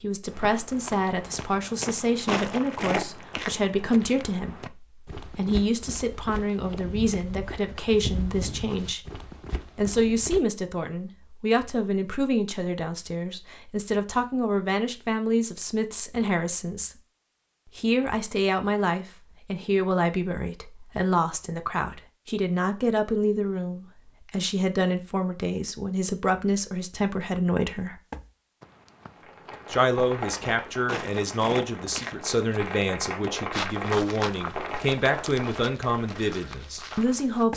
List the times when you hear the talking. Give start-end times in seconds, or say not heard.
0.0-9.0, 9.8-16.9, 17.8-28.0, 29.7-37.5.